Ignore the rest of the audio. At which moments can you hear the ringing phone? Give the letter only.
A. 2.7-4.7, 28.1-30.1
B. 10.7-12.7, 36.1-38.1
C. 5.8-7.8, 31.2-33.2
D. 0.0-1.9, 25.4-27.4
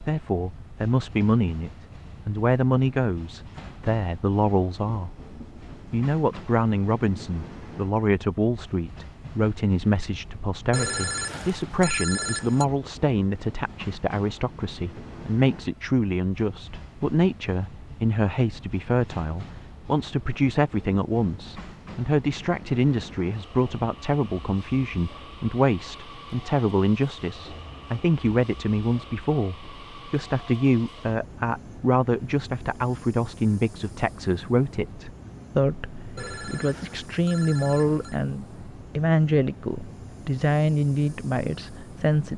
B.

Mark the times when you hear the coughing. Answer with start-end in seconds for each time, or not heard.
not heard.